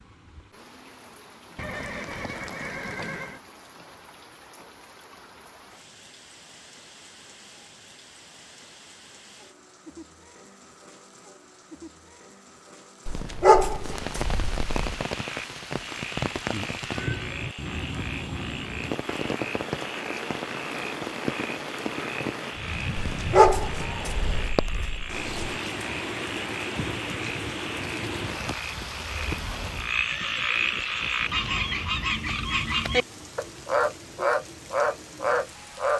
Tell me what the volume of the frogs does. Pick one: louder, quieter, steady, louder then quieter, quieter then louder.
louder.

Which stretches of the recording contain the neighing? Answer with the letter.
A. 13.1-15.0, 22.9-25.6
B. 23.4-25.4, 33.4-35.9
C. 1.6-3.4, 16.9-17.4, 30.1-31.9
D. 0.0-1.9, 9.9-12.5
C.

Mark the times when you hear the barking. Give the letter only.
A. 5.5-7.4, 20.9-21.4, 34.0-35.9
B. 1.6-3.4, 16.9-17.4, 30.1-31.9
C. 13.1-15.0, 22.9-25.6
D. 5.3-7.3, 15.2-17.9
C.